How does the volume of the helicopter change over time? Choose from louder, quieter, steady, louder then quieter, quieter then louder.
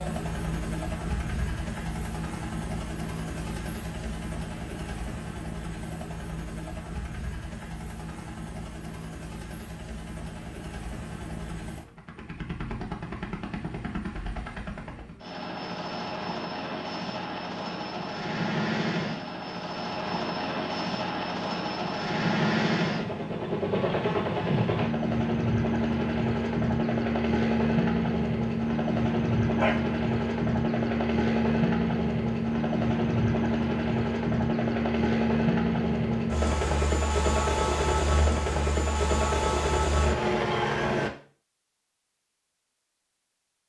louder.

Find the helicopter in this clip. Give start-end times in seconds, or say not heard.
0.0-41.1.